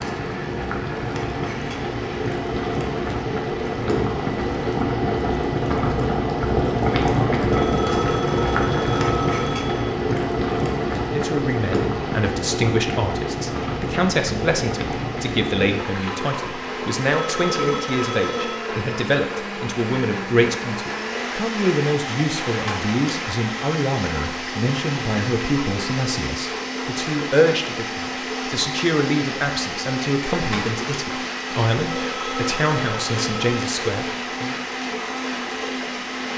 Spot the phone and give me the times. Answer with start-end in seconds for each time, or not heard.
7.5-9.9, 17.1-18.6, 31.9-33.5.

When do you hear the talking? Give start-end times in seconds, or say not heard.
10.9-34.5.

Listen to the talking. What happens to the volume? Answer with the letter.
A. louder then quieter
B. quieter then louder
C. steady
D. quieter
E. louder
C.